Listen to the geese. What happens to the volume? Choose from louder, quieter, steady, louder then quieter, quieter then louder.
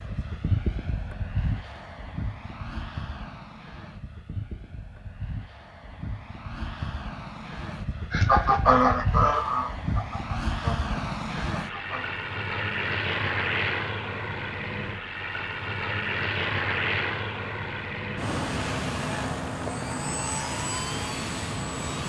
quieter.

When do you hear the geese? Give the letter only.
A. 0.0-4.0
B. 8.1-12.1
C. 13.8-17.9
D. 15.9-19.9
B.